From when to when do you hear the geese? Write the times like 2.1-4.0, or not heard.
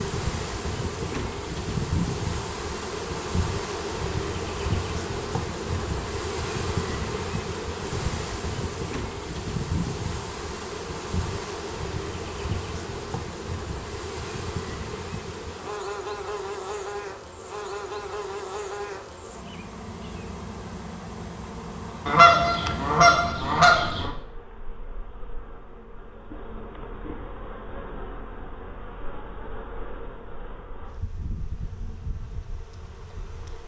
22.1-24.1.